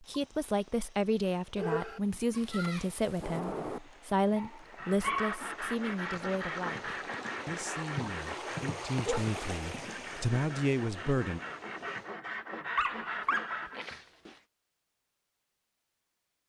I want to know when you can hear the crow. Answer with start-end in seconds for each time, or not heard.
not heard.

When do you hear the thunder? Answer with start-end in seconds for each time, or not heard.
2.3-3.8.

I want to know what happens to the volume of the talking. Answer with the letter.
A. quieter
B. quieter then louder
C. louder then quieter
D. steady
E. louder
B.